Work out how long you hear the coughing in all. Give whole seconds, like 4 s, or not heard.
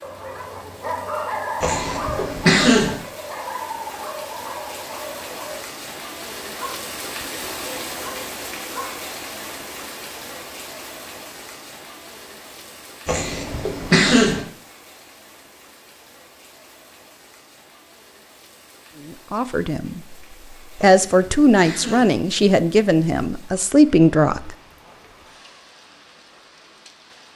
4 s.